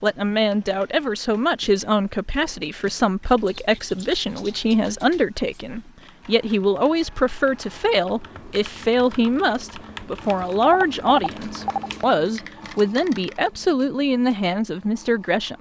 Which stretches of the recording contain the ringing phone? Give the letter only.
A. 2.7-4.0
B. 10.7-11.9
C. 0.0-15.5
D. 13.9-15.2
B.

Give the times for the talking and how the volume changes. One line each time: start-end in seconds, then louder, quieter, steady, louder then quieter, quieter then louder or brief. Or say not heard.
0.0-15.5 steady.